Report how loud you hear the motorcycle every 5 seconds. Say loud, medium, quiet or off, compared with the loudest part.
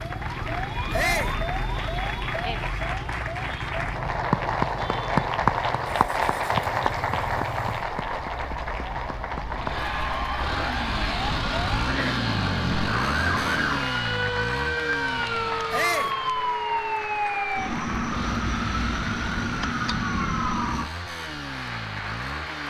medium, medium, loud, medium, medium.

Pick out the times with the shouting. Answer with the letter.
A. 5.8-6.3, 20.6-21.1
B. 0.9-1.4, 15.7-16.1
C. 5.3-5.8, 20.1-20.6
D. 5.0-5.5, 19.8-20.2
B.